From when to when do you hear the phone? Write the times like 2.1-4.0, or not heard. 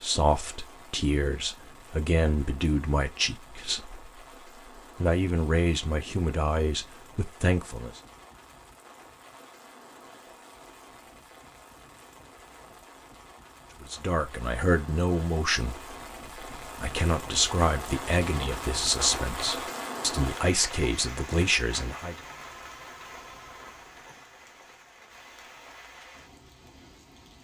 22.4-24.2.